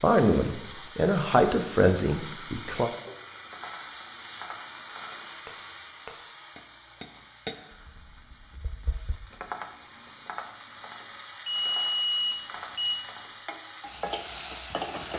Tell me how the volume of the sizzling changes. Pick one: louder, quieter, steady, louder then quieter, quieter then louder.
quieter then louder.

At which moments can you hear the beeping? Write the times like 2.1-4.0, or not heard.
11.4-12.9.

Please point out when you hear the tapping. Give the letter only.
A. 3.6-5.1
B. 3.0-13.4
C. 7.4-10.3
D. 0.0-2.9
B.